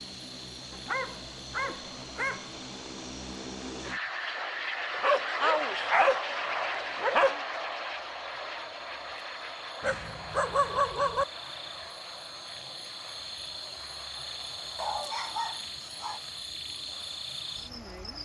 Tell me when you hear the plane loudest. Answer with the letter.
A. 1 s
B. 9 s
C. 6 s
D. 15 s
C.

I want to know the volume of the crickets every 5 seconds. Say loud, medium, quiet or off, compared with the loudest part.
medium, medium, loud, loud.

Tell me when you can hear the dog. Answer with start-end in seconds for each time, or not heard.
0.7-2.5, 4.9-7.4, 9.8-11.2, 14.8-16.2.